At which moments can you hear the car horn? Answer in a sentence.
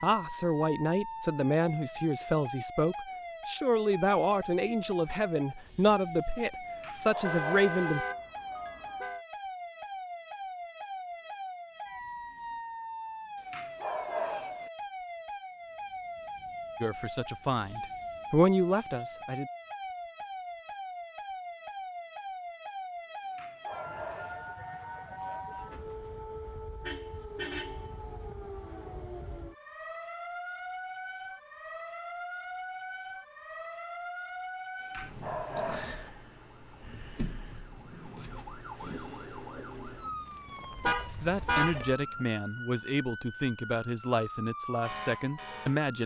You can hear the car horn from 7.2 to 9.2 s, from 26.8 to 27.8 s and from 40.8 to 42.2 s.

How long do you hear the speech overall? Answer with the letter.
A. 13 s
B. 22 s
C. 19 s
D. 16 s
D.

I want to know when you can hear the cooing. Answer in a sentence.
You can't hear the cooing here.